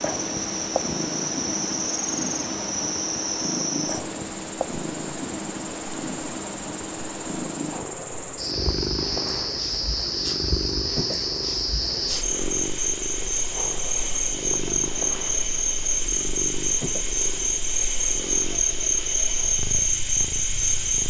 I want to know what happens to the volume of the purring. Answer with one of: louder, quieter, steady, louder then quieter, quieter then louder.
quieter.